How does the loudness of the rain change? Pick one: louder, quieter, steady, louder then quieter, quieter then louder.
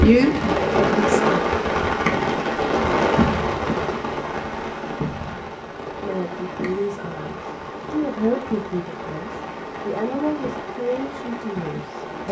quieter.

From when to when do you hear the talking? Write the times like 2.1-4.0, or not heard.
0.0-1.4, 6.0-12.2.